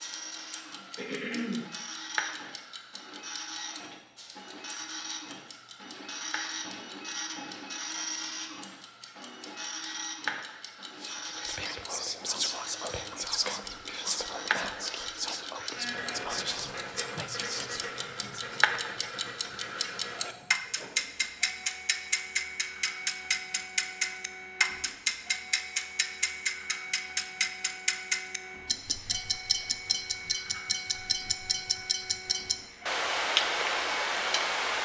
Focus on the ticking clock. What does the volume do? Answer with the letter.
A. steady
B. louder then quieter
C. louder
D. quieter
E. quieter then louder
C.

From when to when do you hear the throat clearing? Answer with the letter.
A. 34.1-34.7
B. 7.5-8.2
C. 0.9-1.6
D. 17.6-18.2
C.